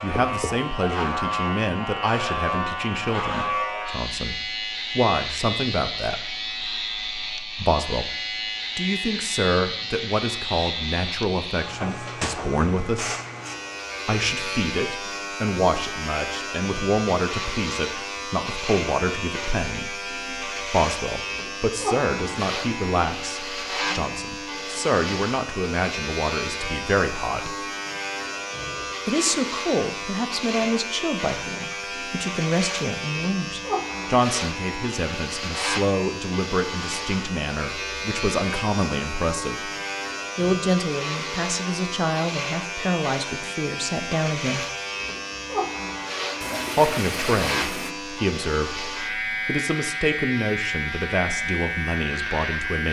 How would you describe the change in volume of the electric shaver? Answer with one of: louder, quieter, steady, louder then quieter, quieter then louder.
steady.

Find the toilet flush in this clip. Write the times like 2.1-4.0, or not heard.
46.4-48.0.